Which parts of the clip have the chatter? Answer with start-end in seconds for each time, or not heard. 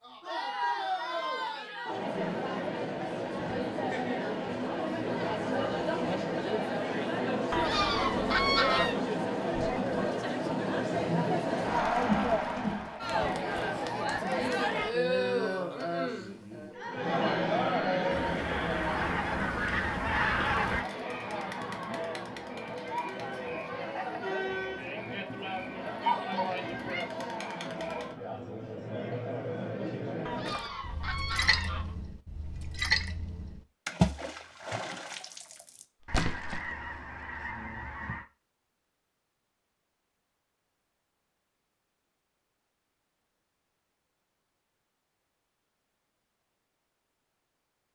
0.0-30.6.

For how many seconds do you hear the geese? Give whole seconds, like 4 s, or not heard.
8 s.